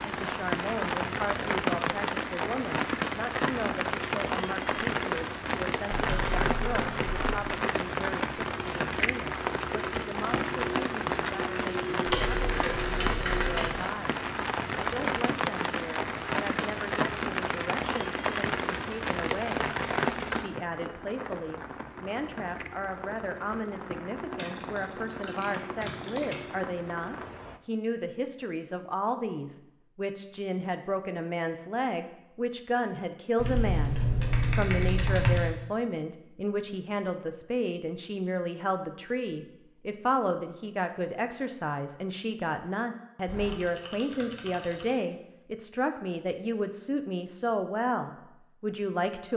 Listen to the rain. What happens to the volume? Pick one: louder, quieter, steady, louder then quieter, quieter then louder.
quieter.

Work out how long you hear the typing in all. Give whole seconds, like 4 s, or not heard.
9 s.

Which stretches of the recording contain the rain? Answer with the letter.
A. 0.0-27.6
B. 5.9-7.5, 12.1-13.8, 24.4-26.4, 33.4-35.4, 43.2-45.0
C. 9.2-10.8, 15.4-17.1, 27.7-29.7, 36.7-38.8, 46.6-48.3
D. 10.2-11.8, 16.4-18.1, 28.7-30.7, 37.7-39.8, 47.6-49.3
A.